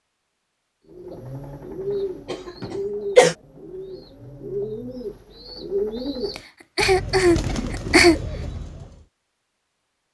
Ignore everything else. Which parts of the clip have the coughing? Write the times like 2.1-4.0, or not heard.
2.2-3.4, 6.3-8.2.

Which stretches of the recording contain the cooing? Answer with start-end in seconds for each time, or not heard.
0.9-9.0.